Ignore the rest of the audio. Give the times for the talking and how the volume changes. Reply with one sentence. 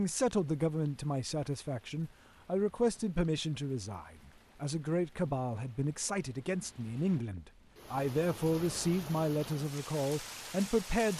The talking can be heard from 0.0 to 11.1 s, at a steady volume.